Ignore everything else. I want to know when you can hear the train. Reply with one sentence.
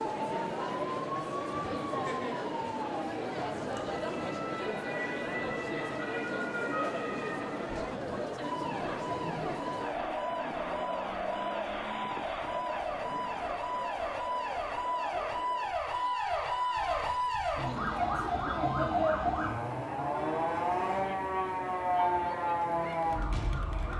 The train can't be heard in this clip.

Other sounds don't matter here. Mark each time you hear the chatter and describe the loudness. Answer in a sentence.
You can hear the chatter from 0.0 to 23.9 s, getting quieter.